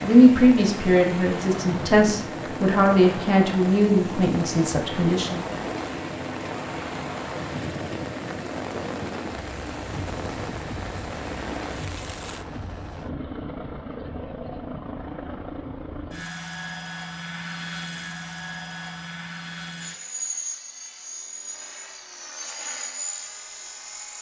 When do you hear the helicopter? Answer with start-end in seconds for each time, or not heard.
0.0-24.1.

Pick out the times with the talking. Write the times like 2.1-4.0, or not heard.
0.0-5.5.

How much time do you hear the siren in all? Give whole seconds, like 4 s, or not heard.
not heard.